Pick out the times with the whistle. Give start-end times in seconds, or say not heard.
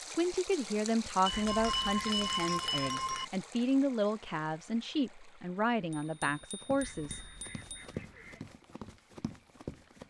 not heard.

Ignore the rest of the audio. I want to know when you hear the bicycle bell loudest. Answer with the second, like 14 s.
2 s.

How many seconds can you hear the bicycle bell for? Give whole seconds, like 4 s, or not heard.
4 s.